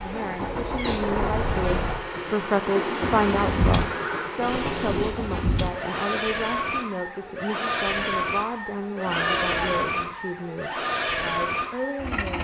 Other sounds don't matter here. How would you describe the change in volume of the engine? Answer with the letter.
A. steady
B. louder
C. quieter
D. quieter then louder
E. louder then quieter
A.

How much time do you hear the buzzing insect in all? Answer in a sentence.
You can hear the buzzing insect for 6 seconds altogether.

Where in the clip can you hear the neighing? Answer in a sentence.
The neighing can be heard from 2.6 to 4.3 s.